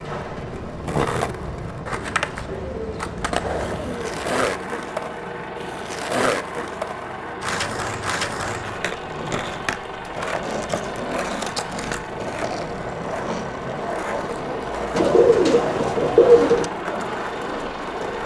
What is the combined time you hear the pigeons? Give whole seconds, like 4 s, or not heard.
4 s.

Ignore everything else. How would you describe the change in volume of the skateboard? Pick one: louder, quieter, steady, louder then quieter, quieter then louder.
steady.